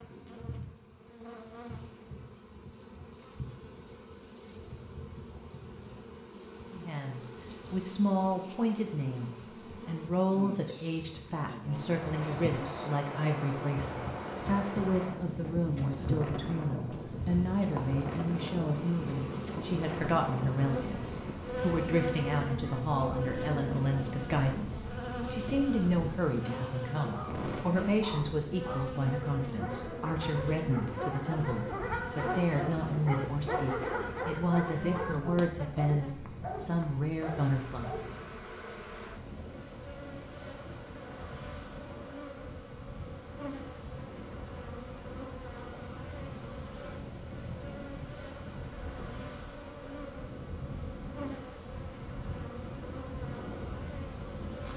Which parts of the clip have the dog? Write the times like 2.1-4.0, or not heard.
26.4-38.2.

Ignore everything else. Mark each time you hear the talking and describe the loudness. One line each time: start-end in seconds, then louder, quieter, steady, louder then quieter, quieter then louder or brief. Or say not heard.
6.7-38.0 steady.